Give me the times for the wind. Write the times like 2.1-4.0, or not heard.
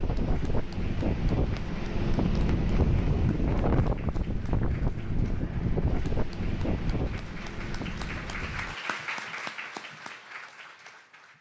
0.0-8.8.